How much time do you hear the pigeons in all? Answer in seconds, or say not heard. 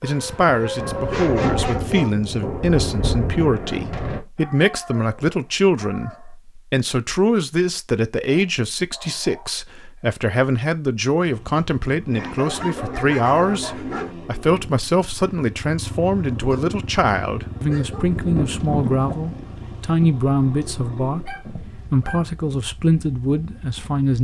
not heard.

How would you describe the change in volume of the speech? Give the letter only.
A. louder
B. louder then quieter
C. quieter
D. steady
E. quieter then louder
D.